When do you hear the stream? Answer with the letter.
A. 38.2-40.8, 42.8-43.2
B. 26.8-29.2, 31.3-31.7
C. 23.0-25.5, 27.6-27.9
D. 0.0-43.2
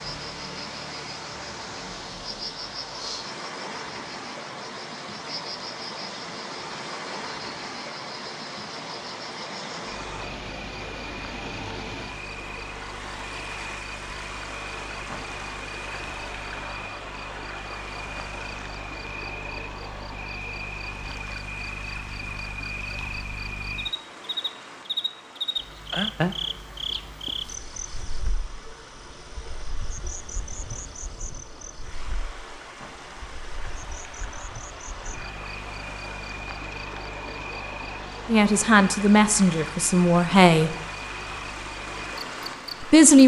D.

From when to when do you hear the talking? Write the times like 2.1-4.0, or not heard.
38.2-40.8, 42.8-43.2.